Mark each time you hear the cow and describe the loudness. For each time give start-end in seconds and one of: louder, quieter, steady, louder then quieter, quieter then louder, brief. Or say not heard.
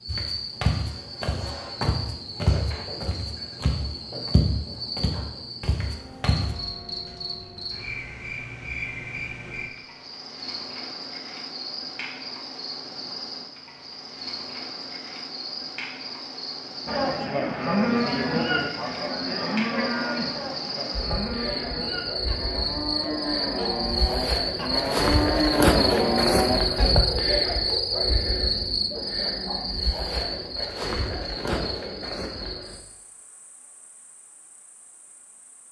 16.9-26.9 quieter then louder.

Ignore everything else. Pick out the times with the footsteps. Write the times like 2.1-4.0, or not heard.
0.1-6.5.